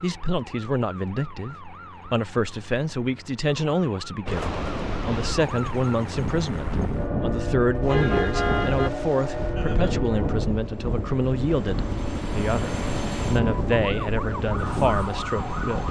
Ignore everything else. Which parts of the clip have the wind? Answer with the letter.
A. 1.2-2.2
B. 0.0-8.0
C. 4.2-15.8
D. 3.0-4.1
C.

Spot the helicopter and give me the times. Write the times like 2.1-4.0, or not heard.
7.8-15.8.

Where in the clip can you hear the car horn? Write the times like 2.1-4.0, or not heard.
7.8-8.9.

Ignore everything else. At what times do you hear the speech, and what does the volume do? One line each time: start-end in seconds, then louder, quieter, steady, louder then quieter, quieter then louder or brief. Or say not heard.
0.0-15.8 steady.